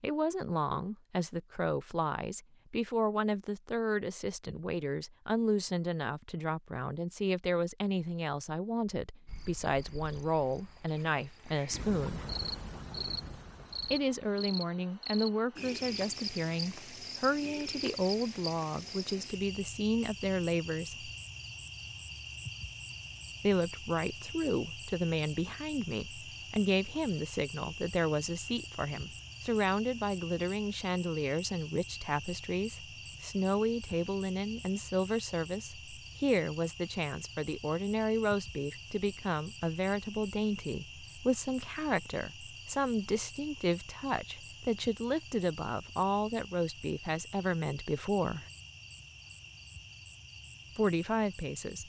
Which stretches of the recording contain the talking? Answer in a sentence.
The talking can be heard from 0.0 to 12.2 s, from 13.9 to 21.1 s, from 23.4 to 48.5 s and from 50.8 to 51.8 s.